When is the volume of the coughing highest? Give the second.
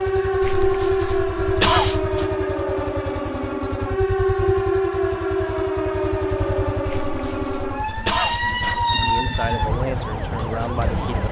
2 s.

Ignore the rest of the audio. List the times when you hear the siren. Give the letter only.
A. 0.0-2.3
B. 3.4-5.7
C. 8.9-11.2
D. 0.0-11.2
D.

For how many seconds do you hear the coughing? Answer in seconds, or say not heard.
4 s.